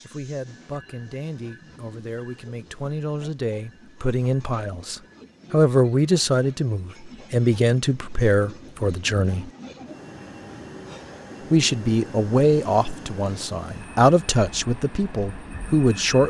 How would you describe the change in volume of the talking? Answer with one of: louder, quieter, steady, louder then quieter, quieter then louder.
louder.